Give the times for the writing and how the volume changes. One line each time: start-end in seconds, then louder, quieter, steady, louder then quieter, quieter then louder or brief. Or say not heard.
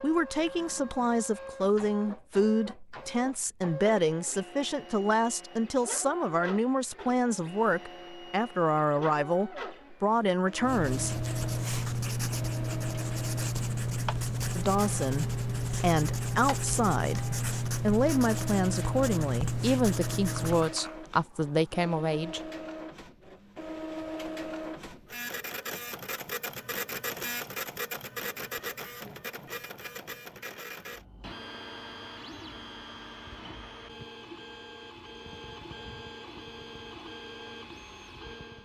10.6-20.8 steady.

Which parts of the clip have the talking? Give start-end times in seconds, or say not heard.
0.0-11.2, 14.6-22.4.